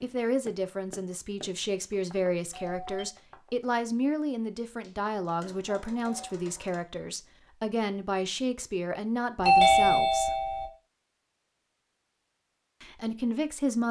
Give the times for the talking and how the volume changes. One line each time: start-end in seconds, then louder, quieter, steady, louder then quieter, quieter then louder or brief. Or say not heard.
0.0-10.3 steady
12.8-13.8 brief.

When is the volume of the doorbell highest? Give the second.
10 s.